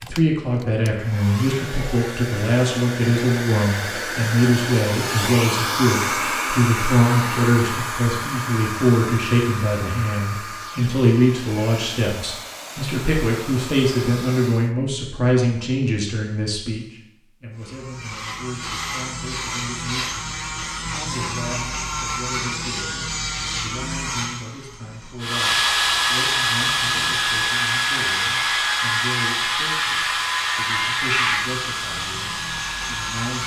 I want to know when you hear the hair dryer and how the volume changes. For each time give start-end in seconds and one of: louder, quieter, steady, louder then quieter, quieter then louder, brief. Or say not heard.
0.0-14.8 louder then quieter
25.2-33.4 quieter.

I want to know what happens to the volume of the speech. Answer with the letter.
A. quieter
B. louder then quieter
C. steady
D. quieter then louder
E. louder
A.